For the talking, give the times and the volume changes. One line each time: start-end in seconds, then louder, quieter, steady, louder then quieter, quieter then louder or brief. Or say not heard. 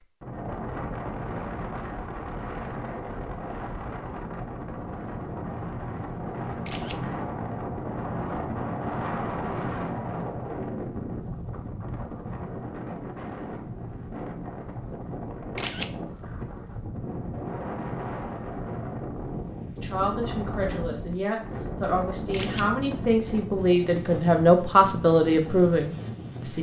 19.8-26.5 louder.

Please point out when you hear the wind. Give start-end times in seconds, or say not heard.
0.0-26.5.